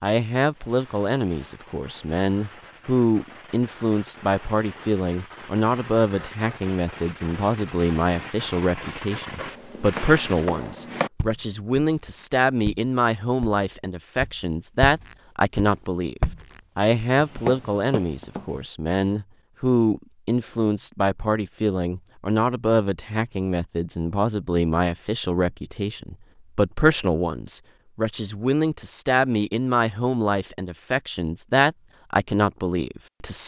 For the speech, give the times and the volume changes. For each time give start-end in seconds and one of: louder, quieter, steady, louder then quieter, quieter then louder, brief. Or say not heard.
0.0-33.4 steady.